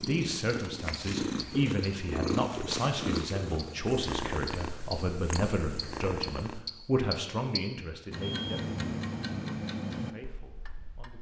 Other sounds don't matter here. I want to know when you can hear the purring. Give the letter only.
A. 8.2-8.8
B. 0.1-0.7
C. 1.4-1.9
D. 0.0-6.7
D.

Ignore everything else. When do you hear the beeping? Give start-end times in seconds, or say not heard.
8.2-8.8.